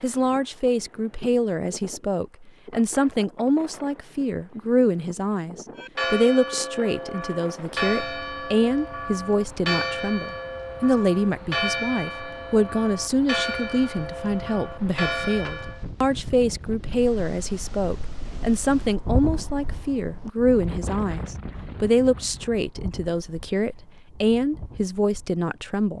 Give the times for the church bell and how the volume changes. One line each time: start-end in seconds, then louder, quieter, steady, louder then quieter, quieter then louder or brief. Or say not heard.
5.8-15.8 steady.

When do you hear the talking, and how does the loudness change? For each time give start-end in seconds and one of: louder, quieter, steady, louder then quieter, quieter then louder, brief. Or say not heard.
0.0-25.9 steady.